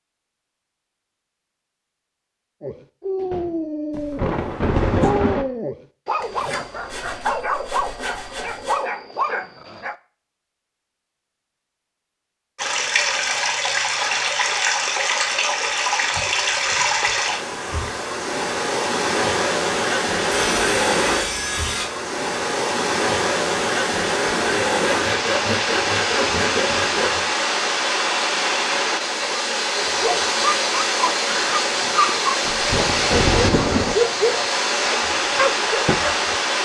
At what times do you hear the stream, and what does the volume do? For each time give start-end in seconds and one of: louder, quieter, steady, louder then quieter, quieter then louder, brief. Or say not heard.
12.6-36.5 steady.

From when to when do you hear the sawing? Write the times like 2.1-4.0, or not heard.
6.2-8.8, 20.3-21.9, 24.8-27.2.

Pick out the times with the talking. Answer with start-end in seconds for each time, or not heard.
not heard.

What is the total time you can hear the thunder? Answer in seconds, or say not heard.
3 s.